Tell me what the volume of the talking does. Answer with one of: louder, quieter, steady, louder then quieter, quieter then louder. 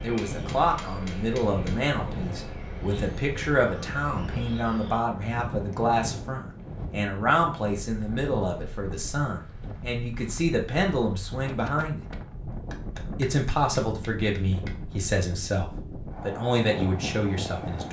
steady.